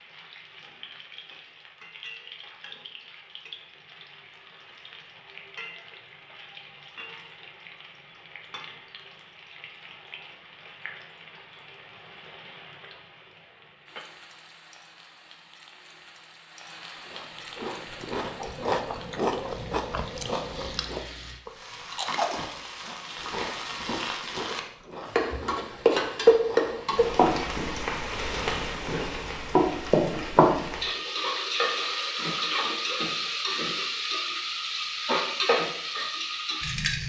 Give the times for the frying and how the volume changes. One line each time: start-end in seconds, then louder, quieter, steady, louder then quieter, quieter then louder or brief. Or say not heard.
0.0-37.0 louder.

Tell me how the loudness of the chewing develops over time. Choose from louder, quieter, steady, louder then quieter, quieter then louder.
quieter.